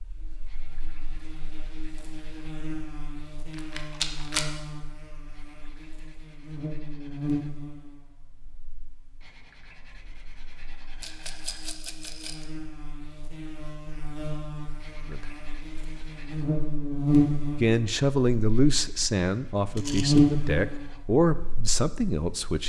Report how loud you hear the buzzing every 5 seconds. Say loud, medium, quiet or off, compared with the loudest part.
quiet, quiet, quiet, loud, loud.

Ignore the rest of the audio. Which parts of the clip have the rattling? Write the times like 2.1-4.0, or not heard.
3.5-4.5, 11.0-12.4, 19.8-20.3.